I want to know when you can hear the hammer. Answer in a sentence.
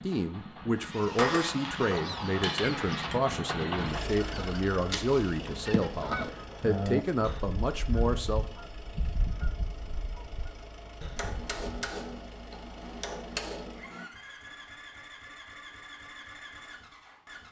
You can hear the hammer from 1.1 to 3.2 s and from 11.2 to 14.1 s.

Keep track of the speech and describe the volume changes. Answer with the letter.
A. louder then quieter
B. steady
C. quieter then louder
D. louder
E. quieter
B.